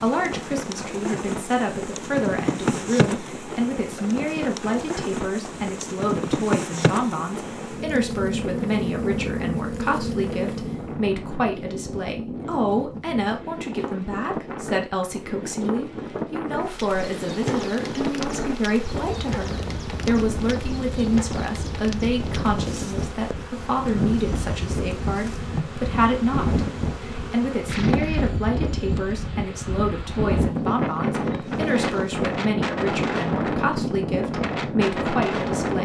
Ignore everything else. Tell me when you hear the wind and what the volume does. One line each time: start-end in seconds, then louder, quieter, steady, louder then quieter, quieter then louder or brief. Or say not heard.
0.0-35.8 louder.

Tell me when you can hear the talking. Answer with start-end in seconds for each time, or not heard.
0.0-35.8.